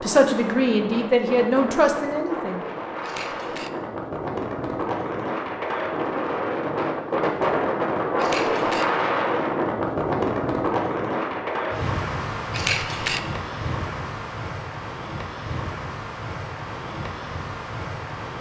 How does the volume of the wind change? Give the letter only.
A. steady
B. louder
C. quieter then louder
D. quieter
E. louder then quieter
E.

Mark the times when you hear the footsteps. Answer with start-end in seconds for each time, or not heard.
not heard.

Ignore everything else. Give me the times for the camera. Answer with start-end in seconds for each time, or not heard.
3.0-3.7, 8.2-8.8, 12.5-13.2.